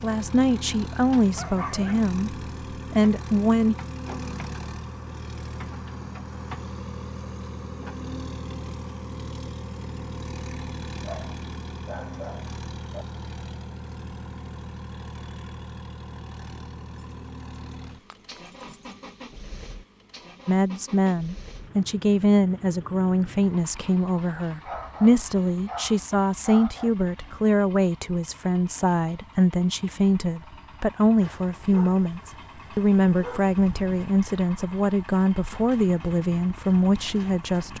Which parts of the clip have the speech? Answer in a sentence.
You can hear the speech from 0.0 to 3.8 s and from 20.4 to 37.7 s.